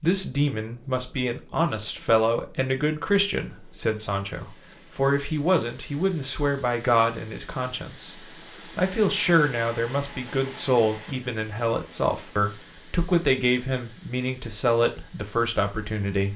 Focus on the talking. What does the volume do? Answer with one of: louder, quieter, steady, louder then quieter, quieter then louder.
steady.